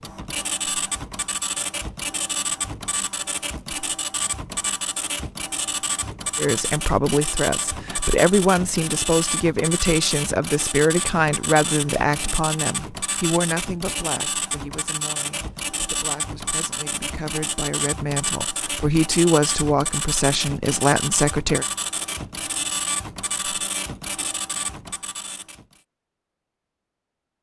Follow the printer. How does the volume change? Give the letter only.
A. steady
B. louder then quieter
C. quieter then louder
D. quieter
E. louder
A.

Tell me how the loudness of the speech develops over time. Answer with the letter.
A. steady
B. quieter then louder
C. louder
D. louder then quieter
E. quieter
B.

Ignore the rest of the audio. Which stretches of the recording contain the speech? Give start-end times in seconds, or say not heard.
6.3-21.6.